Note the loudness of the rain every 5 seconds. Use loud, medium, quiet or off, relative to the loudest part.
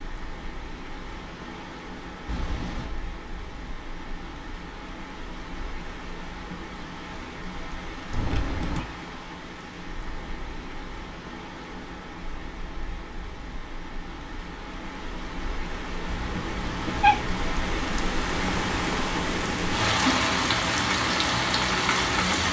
quiet, quiet, quiet, medium, loud.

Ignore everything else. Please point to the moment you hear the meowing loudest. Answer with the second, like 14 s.
17 s.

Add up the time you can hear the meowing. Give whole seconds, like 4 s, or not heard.
3 s.